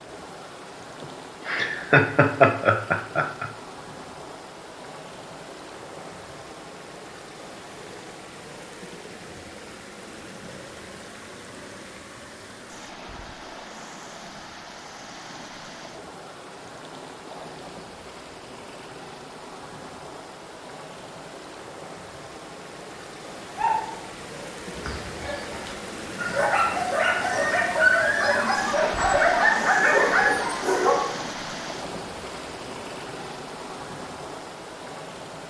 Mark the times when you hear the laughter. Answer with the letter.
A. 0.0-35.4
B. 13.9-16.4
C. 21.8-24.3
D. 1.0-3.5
D.